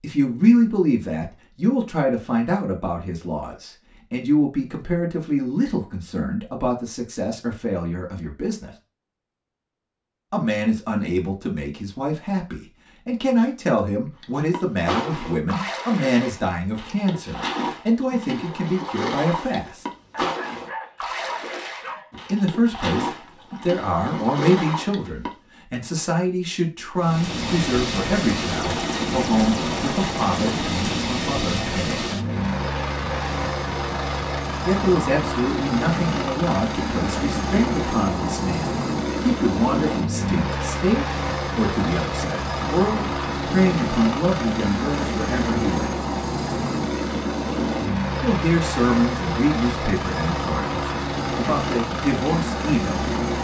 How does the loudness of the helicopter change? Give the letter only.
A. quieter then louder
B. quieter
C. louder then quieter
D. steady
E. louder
D.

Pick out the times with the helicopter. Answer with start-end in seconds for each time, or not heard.
26.9-53.4.